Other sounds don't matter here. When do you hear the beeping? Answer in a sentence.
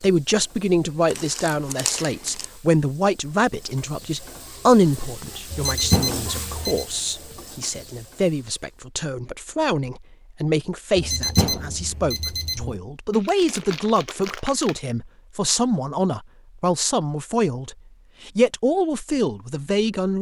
You can hear the beeping from 5.5 to 6.8 s and from 10.9 to 12.8 s.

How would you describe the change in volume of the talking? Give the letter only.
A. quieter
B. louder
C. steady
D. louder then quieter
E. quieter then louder
C.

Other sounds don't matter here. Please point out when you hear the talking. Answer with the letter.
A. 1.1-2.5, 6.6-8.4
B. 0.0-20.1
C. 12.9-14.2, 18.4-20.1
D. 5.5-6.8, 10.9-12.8
B.